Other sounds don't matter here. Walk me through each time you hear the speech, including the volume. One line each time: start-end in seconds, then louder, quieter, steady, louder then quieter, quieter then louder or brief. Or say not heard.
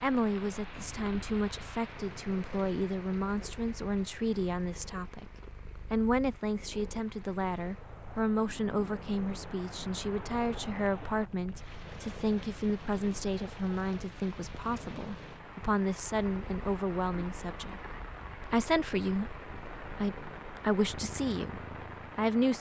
0.0-5.2 steady
5.9-22.5 steady.